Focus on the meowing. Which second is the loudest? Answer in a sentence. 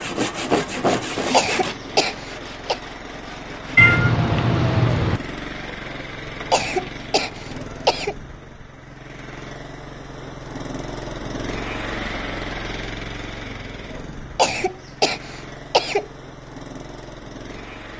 The volume of the meowing peaks at 4 seconds.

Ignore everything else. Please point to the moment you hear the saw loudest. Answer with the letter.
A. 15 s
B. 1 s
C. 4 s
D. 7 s
B.